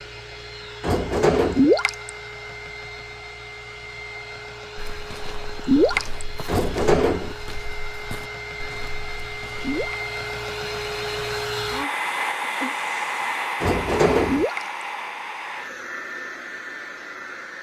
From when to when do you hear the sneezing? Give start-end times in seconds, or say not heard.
not heard.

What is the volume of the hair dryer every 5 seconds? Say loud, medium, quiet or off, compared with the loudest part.
medium, medium, loud, medium.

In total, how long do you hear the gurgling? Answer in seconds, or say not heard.
2 s.